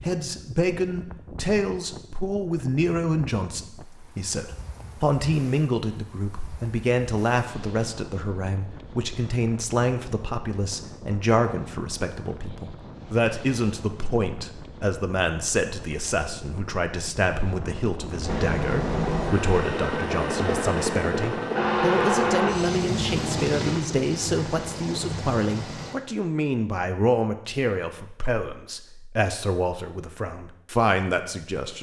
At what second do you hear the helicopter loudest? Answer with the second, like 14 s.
22 s.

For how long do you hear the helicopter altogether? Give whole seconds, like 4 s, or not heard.
8 s.